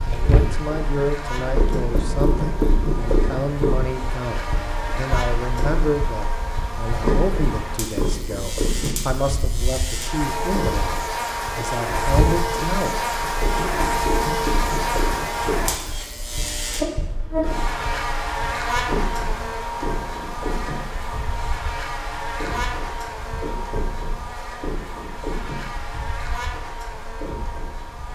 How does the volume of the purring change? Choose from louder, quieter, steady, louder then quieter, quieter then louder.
quieter.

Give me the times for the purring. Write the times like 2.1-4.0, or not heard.
0.0-28.1.